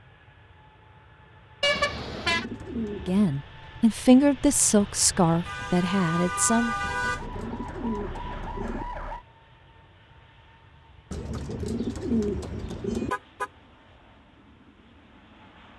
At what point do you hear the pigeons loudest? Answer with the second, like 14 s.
12 s.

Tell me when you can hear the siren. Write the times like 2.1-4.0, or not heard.
6.7-9.2.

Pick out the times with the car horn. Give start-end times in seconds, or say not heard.
1.6-2.5, 5.5-7.2, 13.1-13.5.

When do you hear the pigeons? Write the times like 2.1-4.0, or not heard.
1.8-3.4, 6.8-8.8, 11.1-13.1.